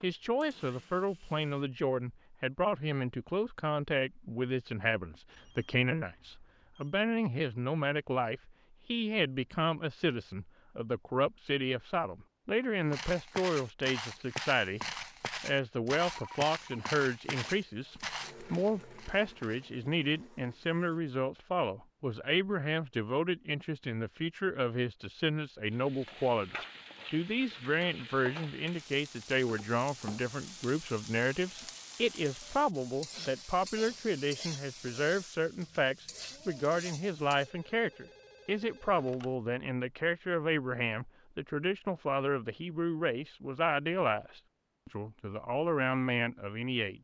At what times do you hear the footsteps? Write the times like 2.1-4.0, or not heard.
12.9-19.7.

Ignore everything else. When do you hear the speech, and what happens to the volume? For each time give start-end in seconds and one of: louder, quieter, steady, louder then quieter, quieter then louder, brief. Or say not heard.
0.0-14.8 steady
15.4-47.0 steady.